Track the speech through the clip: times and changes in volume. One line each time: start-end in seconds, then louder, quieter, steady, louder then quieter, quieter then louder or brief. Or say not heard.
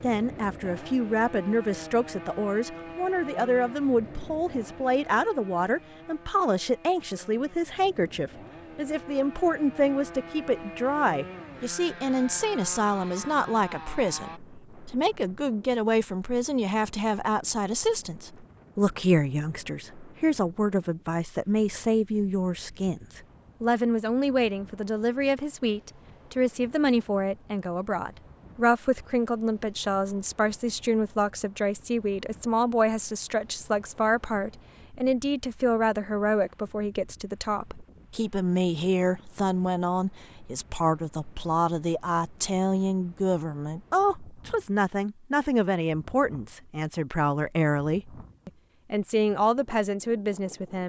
0.0-50.8 steady.